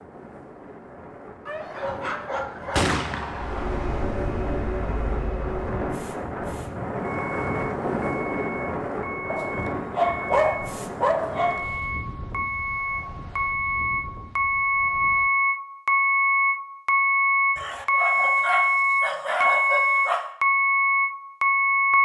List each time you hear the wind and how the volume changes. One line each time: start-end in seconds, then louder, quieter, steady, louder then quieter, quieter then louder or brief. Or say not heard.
0.0-15.3 louder then quieter.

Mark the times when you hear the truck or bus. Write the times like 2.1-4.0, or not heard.
3.3-22.0.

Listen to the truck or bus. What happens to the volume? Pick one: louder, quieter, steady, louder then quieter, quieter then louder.
louder.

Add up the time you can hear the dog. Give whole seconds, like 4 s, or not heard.
7 s.